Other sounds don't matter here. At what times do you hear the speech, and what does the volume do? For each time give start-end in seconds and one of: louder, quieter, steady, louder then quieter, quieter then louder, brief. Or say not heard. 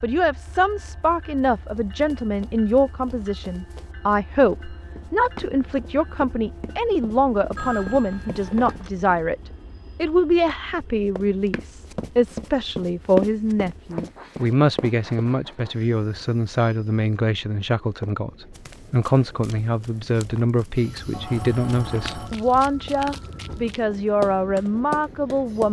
0.0-9.3 steady
9.9-25.6 steady.